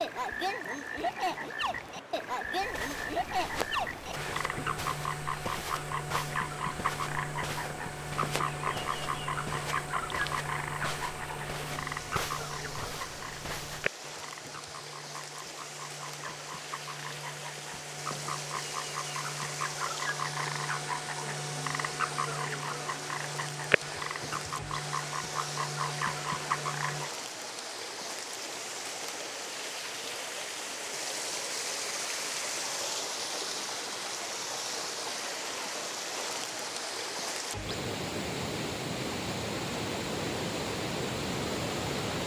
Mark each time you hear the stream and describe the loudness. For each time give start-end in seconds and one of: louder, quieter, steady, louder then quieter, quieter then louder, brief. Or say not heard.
0.0-42.2 louder.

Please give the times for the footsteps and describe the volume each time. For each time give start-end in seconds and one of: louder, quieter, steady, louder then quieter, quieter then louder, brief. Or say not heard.
2.6-13.9 steady.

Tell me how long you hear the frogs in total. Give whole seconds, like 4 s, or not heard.
27 s.